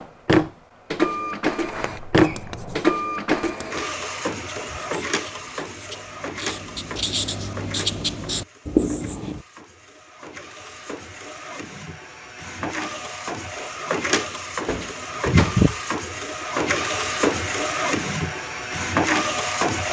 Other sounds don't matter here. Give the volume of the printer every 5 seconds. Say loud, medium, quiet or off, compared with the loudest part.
loud, quiet, medium, loud.